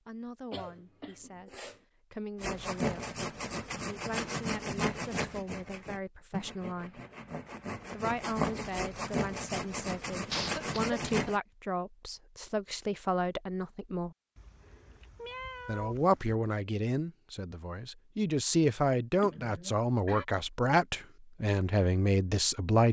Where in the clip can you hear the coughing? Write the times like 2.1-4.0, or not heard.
0.5-1.8, 10.3-11.3, 19.1-20.2.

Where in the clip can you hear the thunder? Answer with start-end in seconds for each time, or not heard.
not heard.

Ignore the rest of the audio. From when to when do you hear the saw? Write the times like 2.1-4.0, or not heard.
2.4-11.4.